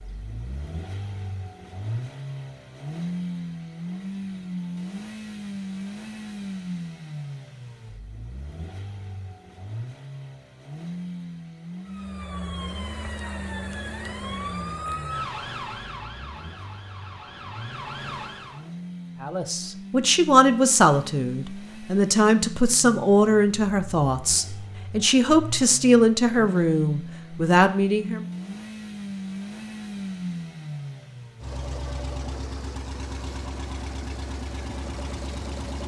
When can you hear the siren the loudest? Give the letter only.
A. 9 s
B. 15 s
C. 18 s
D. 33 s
B.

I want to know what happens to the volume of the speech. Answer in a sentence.
The loudness of the speech stays about the same.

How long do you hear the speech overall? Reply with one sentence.
You can hear the speech for 9 seconds altogether.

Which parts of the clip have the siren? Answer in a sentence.
The siren can be heard from 11.8 to 18.6 s.